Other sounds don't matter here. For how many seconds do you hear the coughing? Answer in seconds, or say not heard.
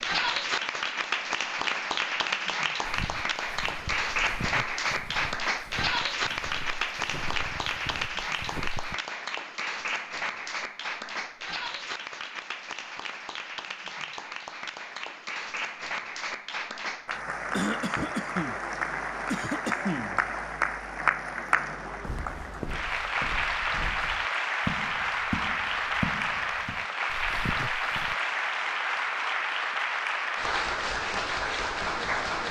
2 s.